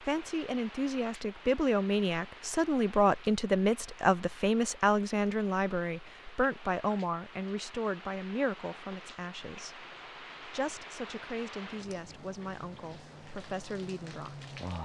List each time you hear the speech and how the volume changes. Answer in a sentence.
You can hear the speech from 0.0 to 14.4 s, getting quieter.